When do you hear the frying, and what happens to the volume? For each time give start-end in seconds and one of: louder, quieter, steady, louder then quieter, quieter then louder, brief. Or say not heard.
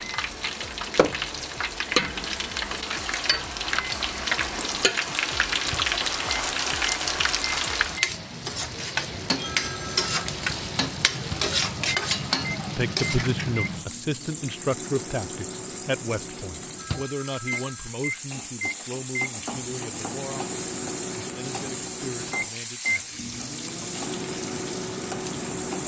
0.0-25.8 quieter.